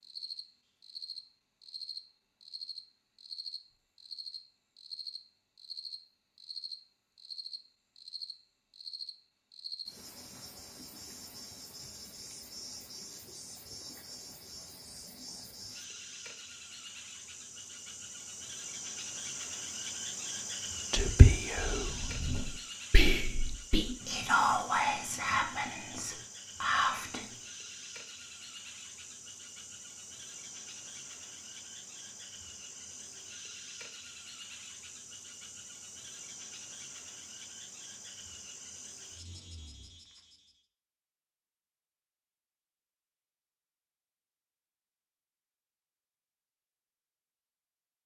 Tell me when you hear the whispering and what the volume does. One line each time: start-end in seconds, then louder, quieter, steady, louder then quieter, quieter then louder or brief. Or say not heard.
20.9-27.4 louder.